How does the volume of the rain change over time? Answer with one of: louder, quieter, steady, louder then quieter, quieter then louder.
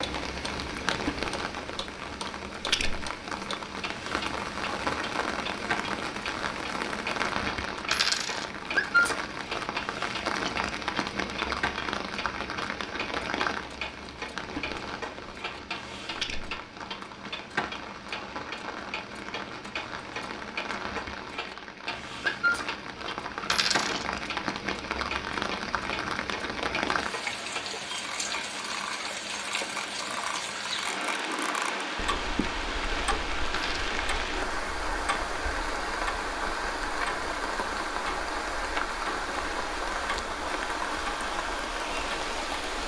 steady.